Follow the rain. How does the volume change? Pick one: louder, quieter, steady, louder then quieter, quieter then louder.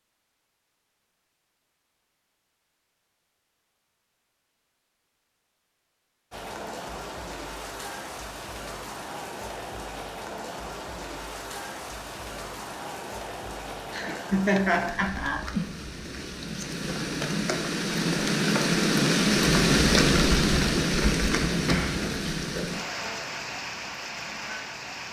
louder then quieter.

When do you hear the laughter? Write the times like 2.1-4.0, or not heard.
13.8-15.5.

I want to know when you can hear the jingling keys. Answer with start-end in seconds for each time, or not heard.
21.6-22.2.